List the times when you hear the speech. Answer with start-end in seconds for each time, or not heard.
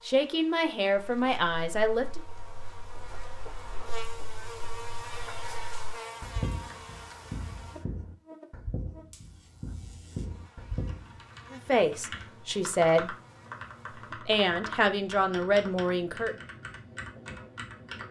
0.1-2.2, 11.5-13.2, 14.2-16.4.